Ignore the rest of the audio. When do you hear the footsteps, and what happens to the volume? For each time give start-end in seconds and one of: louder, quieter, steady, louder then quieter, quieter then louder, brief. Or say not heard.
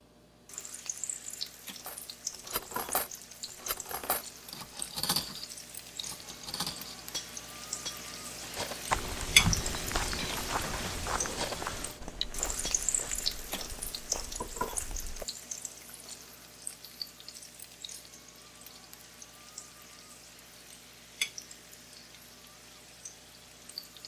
8.9-15.2 quieter.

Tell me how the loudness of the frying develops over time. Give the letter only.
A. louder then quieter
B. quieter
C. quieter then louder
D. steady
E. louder
A.